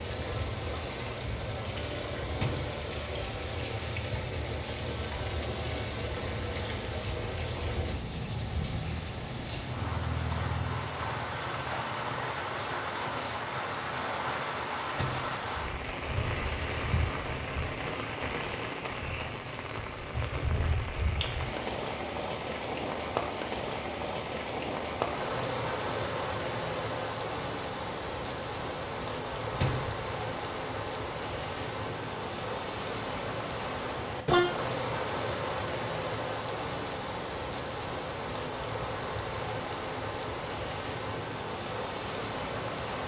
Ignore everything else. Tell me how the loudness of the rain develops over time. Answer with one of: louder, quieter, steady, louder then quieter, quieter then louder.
steady.